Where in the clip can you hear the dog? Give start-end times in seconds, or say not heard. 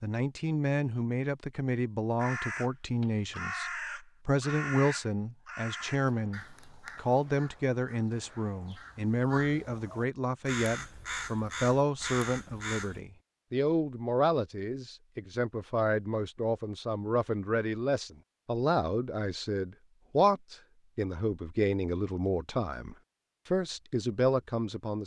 not heard.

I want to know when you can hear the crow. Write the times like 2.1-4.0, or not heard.
2.1-13.0.